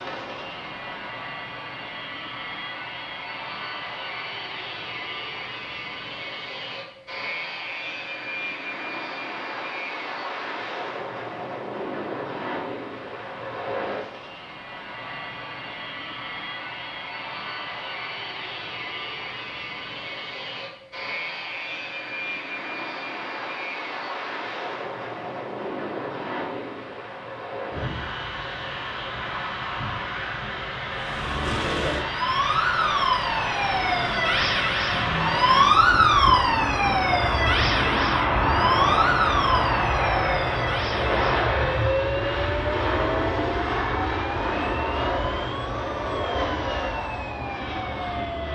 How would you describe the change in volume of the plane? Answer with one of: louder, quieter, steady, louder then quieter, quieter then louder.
louder.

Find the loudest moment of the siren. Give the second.
36 s.